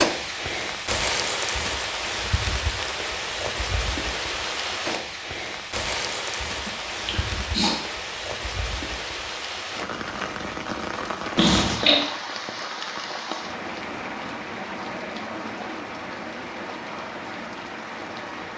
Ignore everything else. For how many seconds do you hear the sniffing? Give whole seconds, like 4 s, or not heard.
2 s.